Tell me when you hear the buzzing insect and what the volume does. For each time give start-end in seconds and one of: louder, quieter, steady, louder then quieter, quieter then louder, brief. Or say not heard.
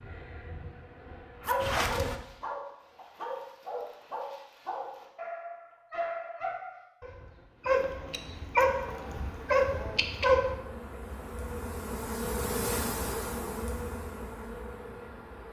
0.0-2.2 brief
8.6-15.4 louder then quieter.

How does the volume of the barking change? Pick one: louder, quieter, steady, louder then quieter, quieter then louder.
louder.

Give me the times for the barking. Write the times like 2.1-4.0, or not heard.
1.4-10.6.